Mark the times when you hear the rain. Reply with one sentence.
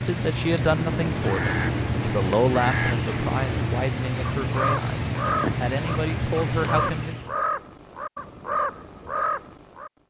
The rain can be heard from 0.0 to 7.3 s.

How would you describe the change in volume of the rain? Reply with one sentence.
The volume of the rain stays about the same.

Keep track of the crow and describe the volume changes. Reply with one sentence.
The loudness of the crow stays about the same.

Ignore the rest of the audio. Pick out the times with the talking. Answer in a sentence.
The talking can be heard from 0.0 to 7.2 s.